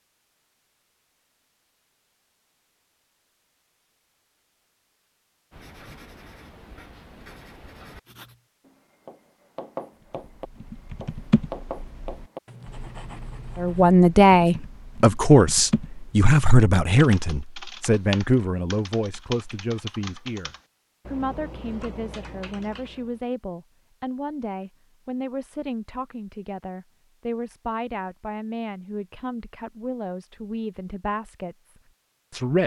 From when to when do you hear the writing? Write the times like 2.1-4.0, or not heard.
5.5-13.9.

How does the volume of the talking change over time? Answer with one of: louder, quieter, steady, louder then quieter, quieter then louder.
quieter.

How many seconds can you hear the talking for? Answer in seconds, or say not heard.
19 s.